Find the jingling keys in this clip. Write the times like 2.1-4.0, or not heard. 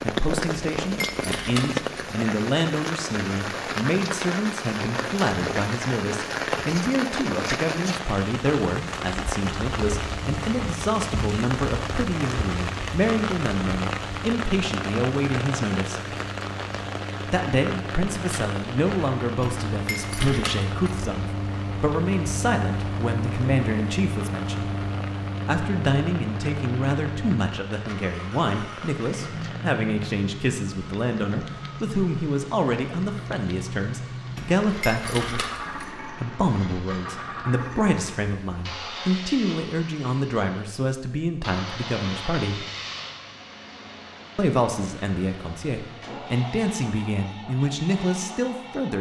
0.5-2.1, 19.4-21.0, 34.4-35.9.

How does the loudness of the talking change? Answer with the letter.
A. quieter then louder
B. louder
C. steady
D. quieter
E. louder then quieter
C.